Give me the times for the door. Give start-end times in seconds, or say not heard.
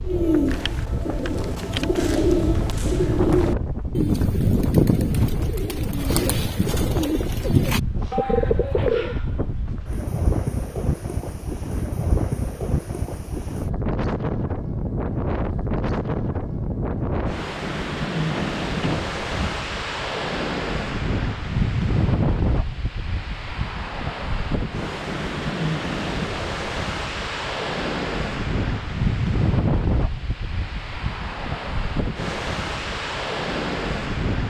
18.3-19.6.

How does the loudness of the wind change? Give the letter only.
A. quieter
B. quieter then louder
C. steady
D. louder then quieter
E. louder
C.